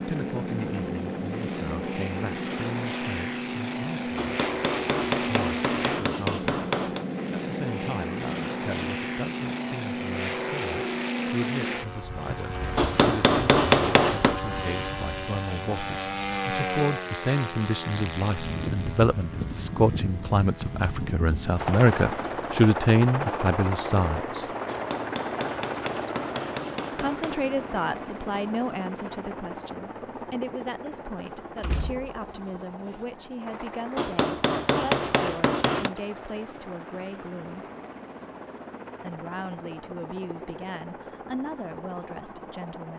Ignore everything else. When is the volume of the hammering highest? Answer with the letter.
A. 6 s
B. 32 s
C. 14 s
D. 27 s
C.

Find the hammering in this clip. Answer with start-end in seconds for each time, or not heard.
4.2-7.0, 12.8-14.4, 24.6-27.4, 34.0-35.9.